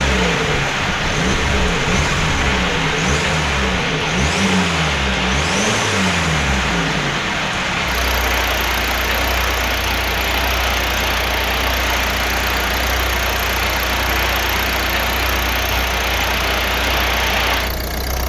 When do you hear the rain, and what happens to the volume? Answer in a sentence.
You can hear the rain from 0.0 to 18.2 s, at a steady volume.